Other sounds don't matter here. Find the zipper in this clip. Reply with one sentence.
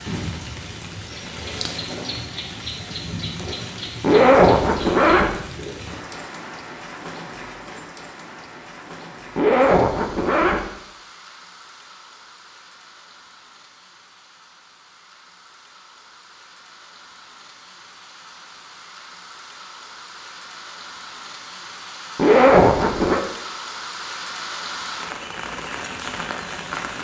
The zipper can be heard from 4.0 to 5.3 s, from 9.3 to 10.7 s and from 22.1 to 23.2 s.